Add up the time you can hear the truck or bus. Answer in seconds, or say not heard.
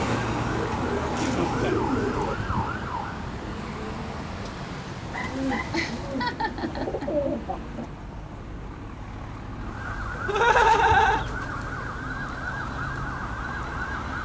14 s.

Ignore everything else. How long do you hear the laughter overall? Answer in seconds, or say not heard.
3 s.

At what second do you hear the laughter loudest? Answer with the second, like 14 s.
11 s.